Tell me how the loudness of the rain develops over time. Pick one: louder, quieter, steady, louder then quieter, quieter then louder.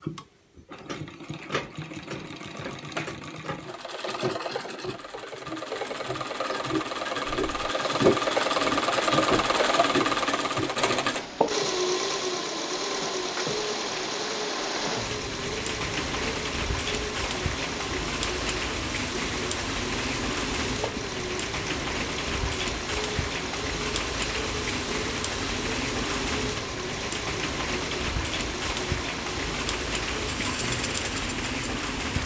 steady.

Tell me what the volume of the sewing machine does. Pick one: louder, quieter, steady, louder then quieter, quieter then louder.
louder then quieter.